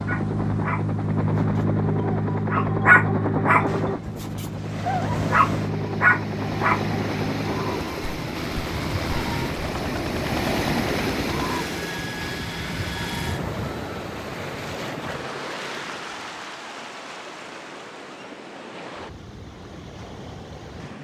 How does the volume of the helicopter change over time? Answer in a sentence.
The volume of the helicopter goes down.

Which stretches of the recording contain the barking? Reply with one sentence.
You can hear the barking from 0.1 to 6.8 s.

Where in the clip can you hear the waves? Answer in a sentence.
The waves can be heard from 3.6 to 20.9 s.